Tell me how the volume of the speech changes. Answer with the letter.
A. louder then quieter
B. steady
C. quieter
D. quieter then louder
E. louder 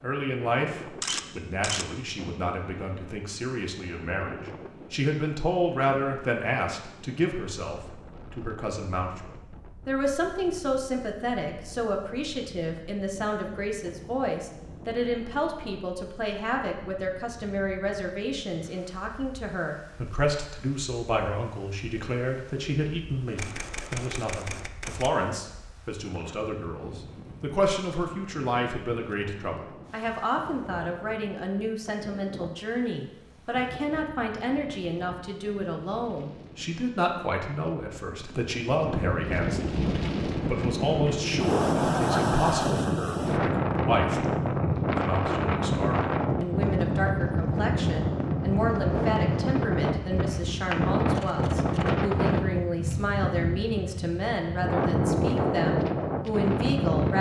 B.